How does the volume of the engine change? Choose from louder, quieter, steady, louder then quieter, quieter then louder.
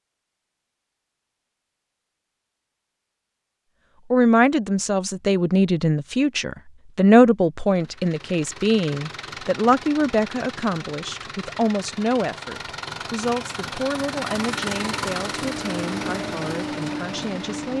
louder.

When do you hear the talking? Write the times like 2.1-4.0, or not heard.
4.1-17.7.